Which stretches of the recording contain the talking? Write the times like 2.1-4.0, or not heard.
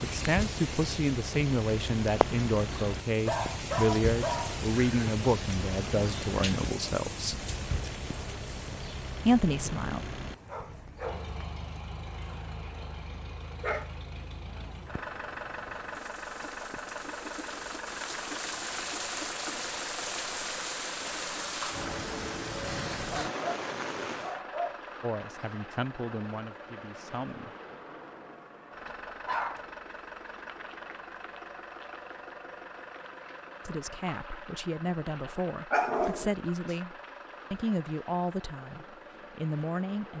0.0-7.4, 9.2-10.0, 25.0-27.5, 33.6-40.1.